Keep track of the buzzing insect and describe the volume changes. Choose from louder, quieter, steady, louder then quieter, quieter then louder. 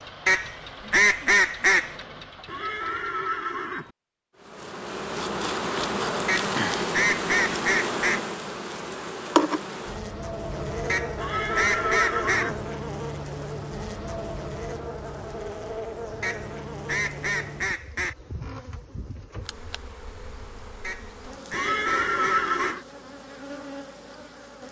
quieter.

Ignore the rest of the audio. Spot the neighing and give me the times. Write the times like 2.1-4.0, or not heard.
2.5-3.9, 11.2-12.6, 21.5-22.9.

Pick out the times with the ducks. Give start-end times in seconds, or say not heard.
0.2-1.9, 6.2-8.2, 10.8-12.5, 16.2-18.1, 20.8-22.8.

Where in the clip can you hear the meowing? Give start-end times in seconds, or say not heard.
not heard.